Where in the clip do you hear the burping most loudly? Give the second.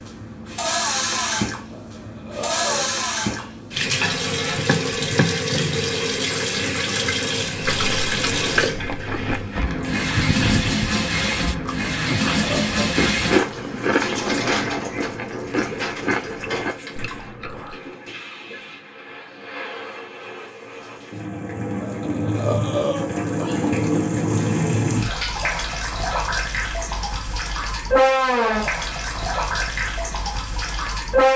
23 s.